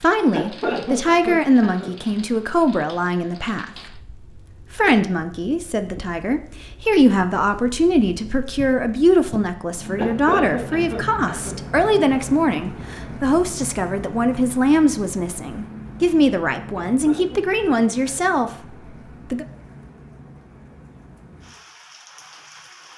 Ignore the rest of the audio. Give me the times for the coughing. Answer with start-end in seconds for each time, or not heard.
0.3-1.9, 9.9-11.6, 16.8-18.4.